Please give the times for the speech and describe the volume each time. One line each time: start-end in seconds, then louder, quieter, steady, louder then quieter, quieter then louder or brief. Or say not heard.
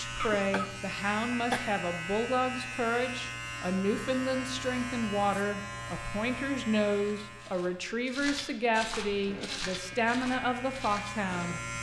0.0-11.7 steady.